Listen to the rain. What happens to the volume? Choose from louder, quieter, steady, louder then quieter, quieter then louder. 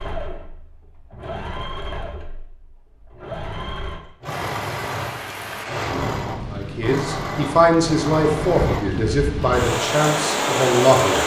louder.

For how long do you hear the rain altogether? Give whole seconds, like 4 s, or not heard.
7 s.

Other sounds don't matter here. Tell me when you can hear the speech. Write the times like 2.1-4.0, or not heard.
6.5-11.2.